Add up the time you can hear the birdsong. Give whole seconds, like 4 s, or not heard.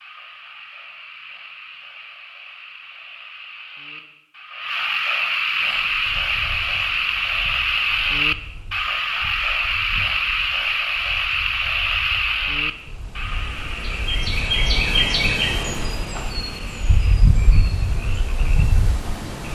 14 s.